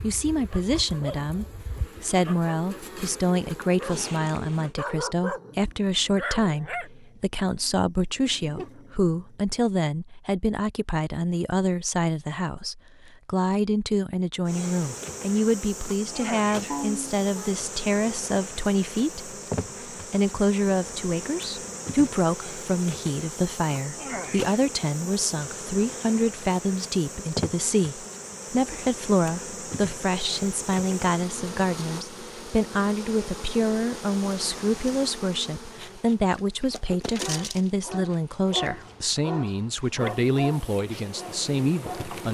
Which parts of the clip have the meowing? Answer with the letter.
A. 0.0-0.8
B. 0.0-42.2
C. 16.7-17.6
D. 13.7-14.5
C.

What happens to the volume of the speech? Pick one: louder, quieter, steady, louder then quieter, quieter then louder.
steady.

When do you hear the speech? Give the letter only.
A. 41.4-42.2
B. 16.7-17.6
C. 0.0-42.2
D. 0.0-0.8
C.